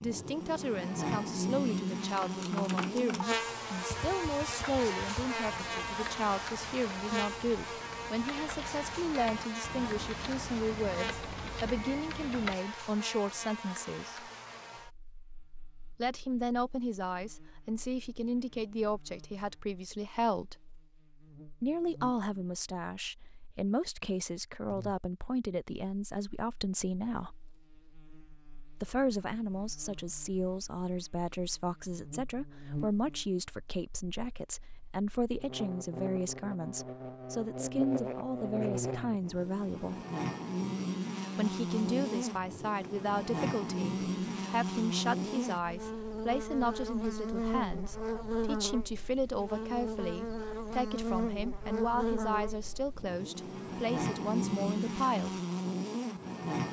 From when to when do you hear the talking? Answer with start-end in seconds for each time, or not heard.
0.0-14.3, 16.0-20.6, 21.6-27.4, 28.8-40.0, 41.4-55.4.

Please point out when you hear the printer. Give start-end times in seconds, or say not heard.
not heard.